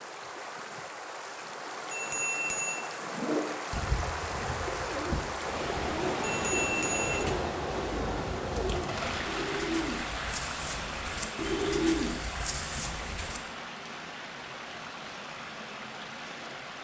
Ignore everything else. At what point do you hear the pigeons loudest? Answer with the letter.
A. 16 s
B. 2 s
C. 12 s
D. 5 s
C.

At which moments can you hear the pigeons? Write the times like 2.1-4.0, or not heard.
3.0-13.4.